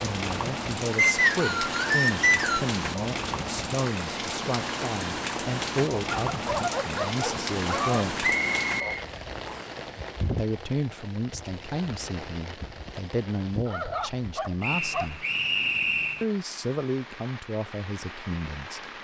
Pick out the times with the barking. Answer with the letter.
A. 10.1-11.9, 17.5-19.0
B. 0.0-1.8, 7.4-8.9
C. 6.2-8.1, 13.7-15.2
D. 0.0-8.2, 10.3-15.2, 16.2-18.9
C.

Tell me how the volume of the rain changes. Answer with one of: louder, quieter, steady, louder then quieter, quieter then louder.
quieter.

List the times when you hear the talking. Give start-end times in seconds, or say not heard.
0.0-8.2, 10.3-15.2, 16.2-18.9.